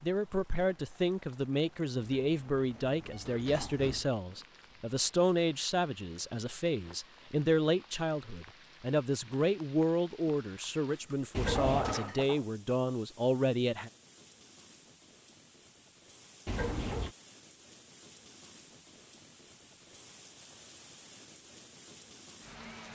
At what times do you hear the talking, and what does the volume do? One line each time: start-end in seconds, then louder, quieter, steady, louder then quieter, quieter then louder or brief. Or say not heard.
0.0-13.9 steady.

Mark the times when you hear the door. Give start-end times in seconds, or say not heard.
2.0-4.1, 11.3-11.9, 16.4-17.1.